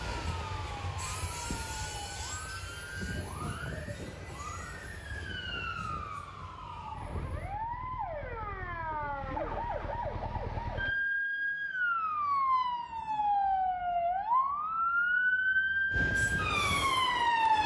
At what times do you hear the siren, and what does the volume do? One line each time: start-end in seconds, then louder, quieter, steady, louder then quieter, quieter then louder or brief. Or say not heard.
0.0-17.6 louder.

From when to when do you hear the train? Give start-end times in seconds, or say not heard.
0.0-7.5, 15.9-17.6.